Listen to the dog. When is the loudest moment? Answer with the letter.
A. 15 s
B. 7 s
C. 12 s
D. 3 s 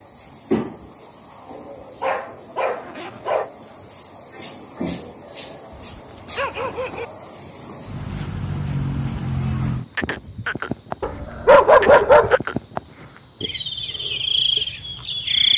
C.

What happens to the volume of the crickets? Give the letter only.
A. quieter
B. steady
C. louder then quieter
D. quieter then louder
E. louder
E.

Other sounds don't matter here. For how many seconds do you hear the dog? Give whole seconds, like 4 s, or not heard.
4 s.